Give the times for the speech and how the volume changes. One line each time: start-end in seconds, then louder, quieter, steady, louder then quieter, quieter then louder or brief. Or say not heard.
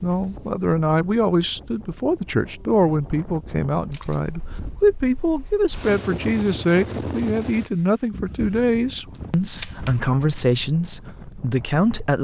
0.0-12.1 steady.